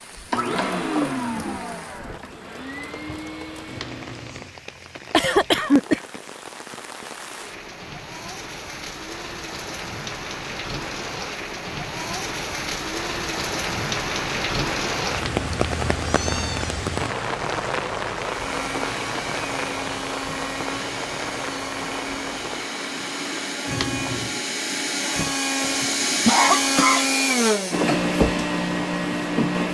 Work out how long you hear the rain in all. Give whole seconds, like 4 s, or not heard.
24 s.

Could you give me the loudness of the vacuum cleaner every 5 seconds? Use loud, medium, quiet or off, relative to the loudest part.
medium, off, off, medium, medium, loud.